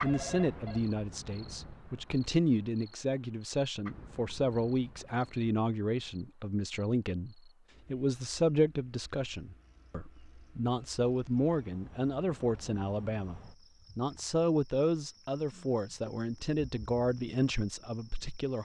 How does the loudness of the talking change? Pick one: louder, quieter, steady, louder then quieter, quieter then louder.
steady.